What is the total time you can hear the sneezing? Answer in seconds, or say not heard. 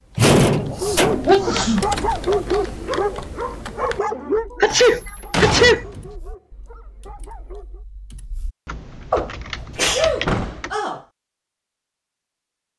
4 s.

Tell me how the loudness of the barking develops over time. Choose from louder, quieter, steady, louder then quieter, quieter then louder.
quieter.